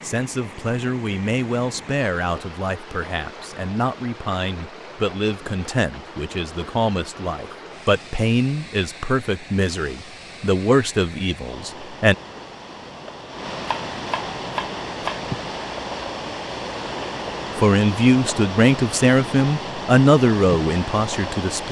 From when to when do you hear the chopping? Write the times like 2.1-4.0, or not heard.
13.7-15.2.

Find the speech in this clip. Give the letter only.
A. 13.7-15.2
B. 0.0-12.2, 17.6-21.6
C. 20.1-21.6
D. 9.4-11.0
B.